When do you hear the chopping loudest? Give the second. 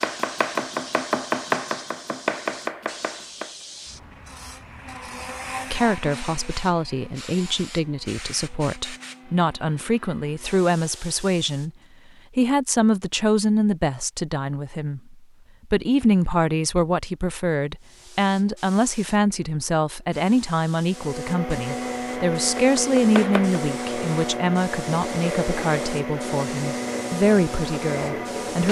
1 s.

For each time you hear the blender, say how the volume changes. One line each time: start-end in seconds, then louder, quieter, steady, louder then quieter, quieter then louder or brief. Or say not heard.
3.6-10.6 louder then quieter
20.9-28.6 steady.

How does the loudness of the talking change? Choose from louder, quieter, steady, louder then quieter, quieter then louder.
steady.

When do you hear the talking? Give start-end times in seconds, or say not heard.
5.7-11.7, 12.3-28.6.